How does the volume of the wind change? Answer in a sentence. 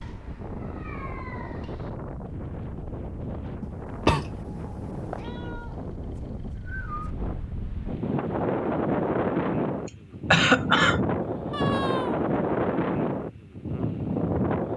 The volume of the wind goes up.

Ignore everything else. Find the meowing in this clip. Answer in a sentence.
The meowing can be heard from 0.0 to 1.9 s, from 5.2 to 7.2 s and from 11.5 to 12.3 s.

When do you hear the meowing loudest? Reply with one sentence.
The volume of the meowing peaks at 12 seconds.